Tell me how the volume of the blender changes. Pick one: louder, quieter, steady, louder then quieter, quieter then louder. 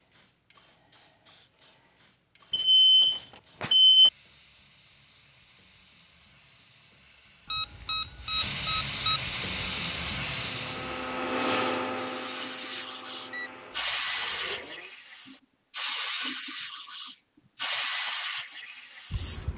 louder then quieter.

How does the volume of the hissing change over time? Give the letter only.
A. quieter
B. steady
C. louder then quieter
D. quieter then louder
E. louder
E.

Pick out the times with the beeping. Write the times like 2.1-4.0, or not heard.
2.5-4.1, 7.5-9.2, 13.3-14.2.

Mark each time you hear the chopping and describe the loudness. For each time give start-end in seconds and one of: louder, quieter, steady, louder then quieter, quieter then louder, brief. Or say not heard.
not heard.